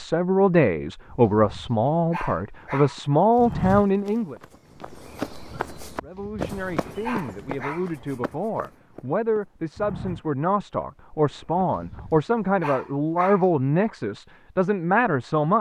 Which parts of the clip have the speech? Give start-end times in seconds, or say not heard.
0.0-4.3, 6.0-15.5.